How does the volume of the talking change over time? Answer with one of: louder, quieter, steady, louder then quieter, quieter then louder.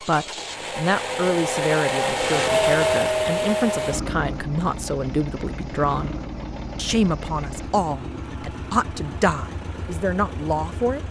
steady.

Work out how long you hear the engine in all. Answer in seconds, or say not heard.
11 s.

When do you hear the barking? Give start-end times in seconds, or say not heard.
not heard.